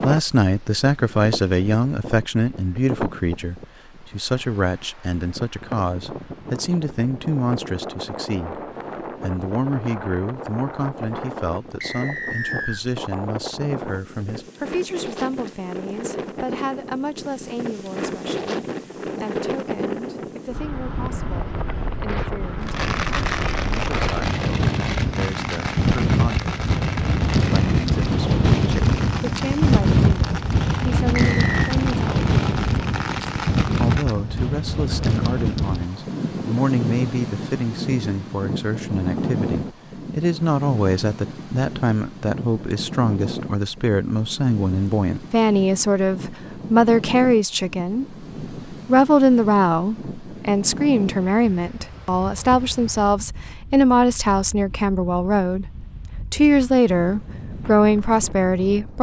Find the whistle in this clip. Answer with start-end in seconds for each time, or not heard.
11.8-12.8, 31.1-31.8.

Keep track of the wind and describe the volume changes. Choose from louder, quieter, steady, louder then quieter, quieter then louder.
louder then quieter.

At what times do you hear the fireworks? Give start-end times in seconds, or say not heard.
22.6-34.2.